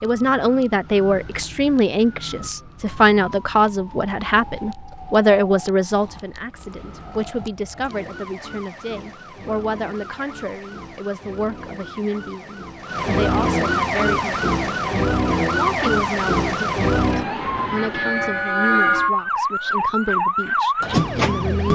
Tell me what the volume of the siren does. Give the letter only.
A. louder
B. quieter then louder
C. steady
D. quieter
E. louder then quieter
A.